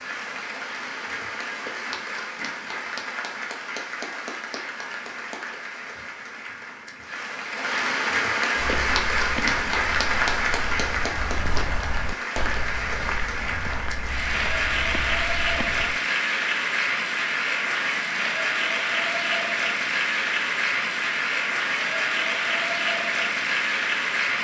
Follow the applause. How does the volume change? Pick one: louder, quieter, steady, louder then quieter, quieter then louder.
louder.